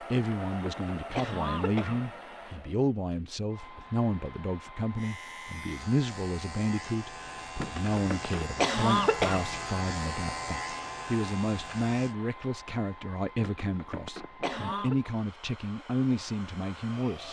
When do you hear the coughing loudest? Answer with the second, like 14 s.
9 s.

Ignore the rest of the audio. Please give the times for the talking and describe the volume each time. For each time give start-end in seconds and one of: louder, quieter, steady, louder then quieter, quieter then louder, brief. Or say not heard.
0.0-17.2 steady.